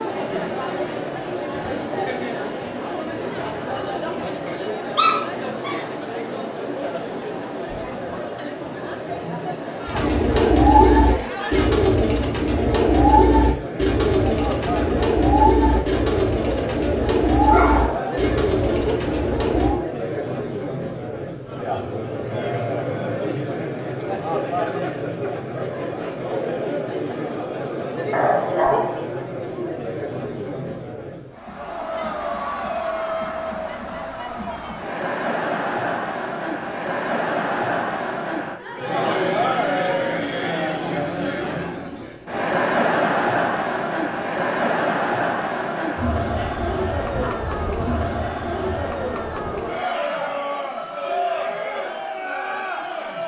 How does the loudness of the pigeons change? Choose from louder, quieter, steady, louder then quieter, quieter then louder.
quieter.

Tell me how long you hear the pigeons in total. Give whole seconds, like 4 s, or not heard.
10 s.